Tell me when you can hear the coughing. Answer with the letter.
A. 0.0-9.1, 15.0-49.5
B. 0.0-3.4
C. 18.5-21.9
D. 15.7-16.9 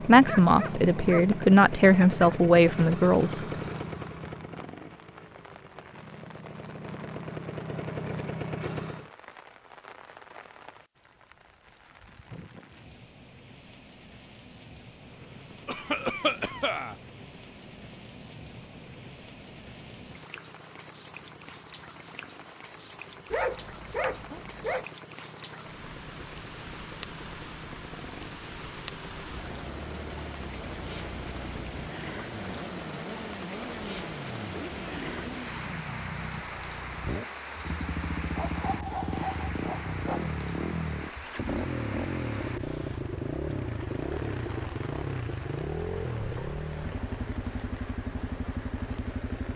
D.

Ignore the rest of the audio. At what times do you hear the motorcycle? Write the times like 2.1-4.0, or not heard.
0.0-9.1, 15.0-49.5.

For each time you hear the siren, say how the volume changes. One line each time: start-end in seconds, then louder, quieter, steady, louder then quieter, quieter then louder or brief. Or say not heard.
not heard.